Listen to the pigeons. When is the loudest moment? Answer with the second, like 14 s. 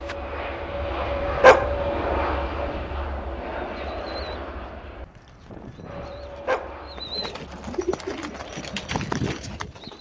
9 s.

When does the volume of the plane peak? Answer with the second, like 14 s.
2 s.